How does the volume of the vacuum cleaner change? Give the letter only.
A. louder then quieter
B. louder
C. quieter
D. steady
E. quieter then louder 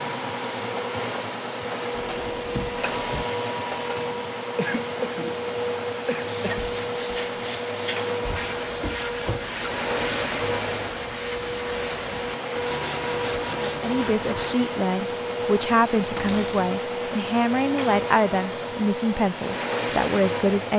D.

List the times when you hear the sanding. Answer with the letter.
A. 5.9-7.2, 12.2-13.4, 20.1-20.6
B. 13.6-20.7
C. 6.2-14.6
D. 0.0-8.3
C.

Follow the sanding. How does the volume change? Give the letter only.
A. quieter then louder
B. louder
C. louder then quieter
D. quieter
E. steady
E.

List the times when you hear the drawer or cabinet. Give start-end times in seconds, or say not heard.
1.9-3.2, 8.2-9.5, 16.1-16.7.